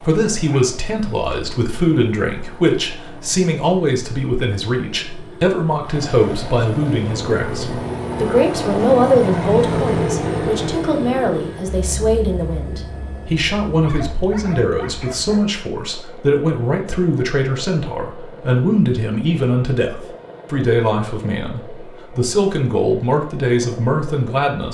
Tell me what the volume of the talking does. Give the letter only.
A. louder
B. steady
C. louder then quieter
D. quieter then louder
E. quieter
B.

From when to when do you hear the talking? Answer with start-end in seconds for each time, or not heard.
0.0-24.6.